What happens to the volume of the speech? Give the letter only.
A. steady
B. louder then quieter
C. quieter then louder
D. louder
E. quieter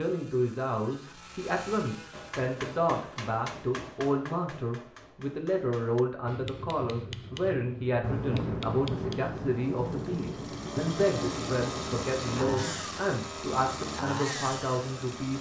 A.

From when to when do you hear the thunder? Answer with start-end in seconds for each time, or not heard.
8.0-12.7.